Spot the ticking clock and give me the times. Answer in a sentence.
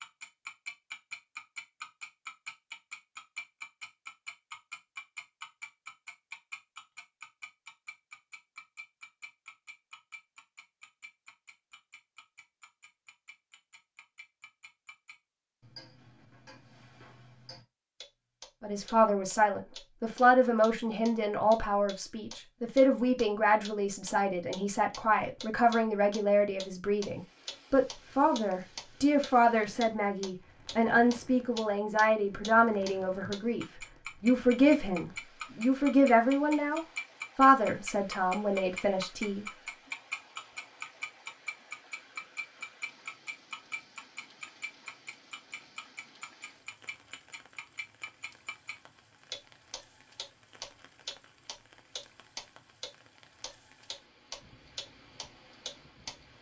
The ticking clock can be heard from 0.0 to 56.1 s.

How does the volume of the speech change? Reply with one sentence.
The volume of the speech stays about the same.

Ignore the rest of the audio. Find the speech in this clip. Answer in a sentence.
You can hear the speech from 18.6 to 39.5 s.